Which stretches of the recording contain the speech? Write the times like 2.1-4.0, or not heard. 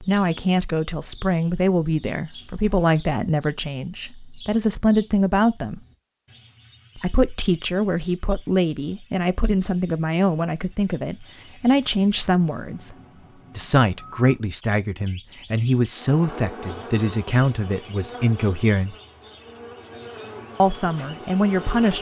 0.0-5.8, 7.0-12.9, 13.6-18.9, 20.6-21.9.